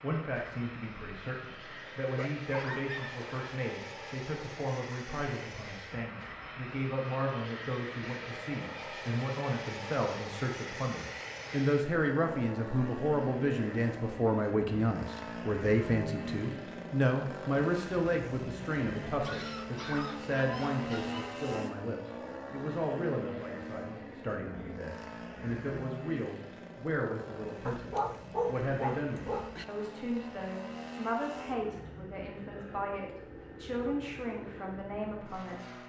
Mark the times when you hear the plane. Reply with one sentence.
You can hear the plane from 0.0 to 35.8 s.